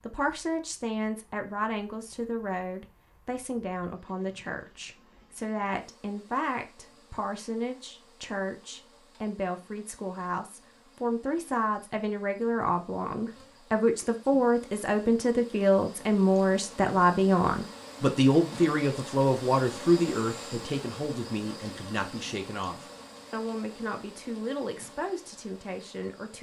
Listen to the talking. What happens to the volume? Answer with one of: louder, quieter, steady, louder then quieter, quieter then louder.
louder then quieter.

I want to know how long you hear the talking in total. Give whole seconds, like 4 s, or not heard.
26 s.